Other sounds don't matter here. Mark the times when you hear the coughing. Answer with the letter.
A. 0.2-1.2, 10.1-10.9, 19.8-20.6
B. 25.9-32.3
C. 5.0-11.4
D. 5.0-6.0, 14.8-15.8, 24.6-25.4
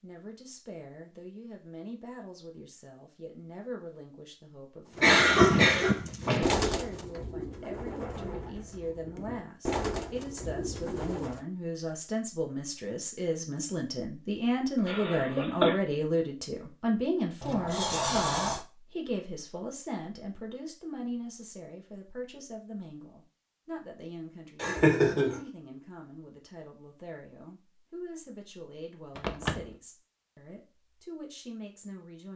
D.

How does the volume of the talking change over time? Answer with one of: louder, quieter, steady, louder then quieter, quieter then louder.
louder then quieter.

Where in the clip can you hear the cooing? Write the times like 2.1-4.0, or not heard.
5.0-11.4.